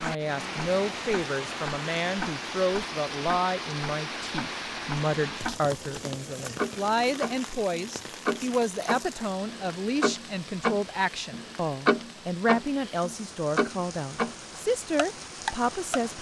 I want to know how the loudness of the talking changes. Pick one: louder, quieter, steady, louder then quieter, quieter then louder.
steady.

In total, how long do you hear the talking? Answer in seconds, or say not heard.
16 s.